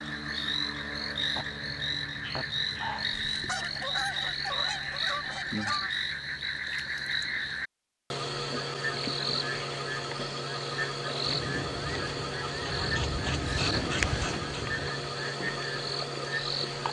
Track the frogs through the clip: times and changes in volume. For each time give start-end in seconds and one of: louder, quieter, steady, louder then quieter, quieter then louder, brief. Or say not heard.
0.0-16.8 steady.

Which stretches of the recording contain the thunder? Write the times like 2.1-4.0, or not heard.
11.2-15.2.